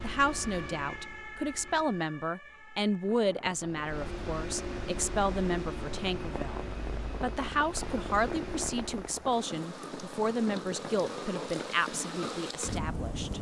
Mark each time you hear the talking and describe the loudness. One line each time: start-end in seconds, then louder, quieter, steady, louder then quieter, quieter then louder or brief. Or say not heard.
0.0-13.3 steady.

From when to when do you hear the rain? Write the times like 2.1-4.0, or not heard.
3.0-13.3.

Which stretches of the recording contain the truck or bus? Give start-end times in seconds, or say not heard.
0.0-2.0, 3.5-9.2.